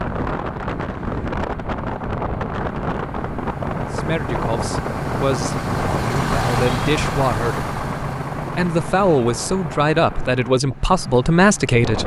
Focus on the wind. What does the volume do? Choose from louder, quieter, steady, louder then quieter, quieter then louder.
quieter.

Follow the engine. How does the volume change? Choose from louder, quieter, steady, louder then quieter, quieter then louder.
louder then quieter.